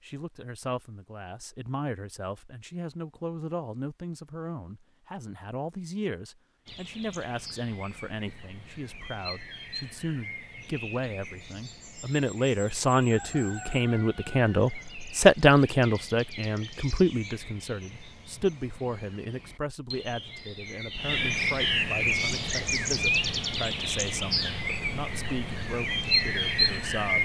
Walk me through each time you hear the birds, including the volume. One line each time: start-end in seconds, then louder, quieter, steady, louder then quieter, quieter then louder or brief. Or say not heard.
6.7-27.2 louder.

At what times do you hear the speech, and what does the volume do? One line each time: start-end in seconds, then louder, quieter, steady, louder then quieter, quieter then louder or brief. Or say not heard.
0.0-27.2 louder then quieter.